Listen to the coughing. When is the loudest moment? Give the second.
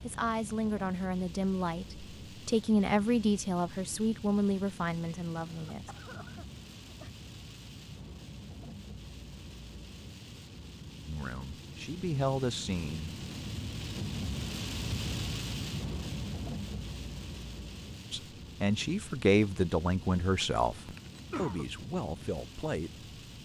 21 s.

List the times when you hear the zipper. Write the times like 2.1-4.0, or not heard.
not heard.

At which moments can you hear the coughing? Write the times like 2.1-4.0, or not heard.
5.5-7.1, 20.9-21.6.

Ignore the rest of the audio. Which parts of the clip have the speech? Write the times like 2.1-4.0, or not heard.
0.0-5.9, 11.1-13.1, 18.1-23.1.